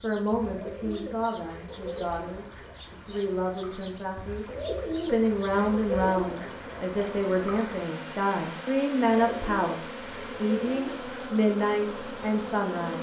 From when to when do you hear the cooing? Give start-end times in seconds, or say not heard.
0.5-2.8, 4.5-6.8, 9.1-11.2.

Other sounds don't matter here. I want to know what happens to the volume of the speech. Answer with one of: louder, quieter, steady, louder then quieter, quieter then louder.
louder.